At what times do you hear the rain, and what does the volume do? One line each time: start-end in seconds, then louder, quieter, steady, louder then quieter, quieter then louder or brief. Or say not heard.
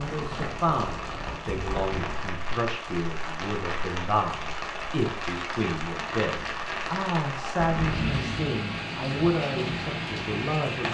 0.0-10.8 steady.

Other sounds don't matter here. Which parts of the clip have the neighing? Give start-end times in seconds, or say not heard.
7.5-8.3.